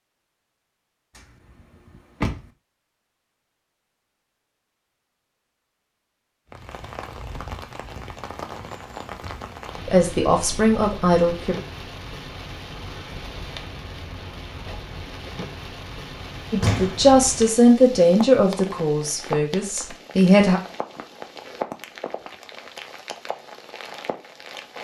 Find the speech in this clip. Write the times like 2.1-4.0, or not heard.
9.8-11.6, 16.5-20.6.